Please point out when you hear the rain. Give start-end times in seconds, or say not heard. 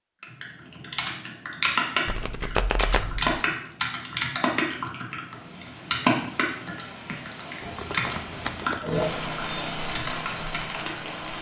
5.1-11.3.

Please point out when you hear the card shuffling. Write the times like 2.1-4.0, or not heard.
2.0-3.4, 7.6-9.1.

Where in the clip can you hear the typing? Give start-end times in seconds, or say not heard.
0.2-10.9.